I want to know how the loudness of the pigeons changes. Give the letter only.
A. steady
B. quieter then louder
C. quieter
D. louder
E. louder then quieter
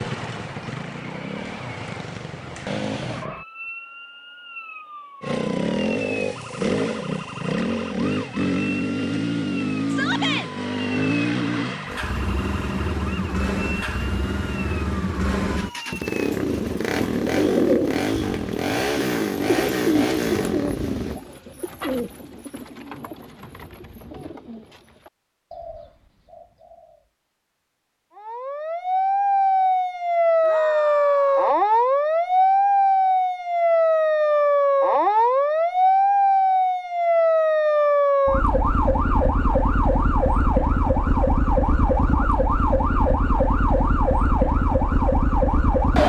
C.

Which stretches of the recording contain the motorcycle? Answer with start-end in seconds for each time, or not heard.
0.0-3.2, 5.2-21.2.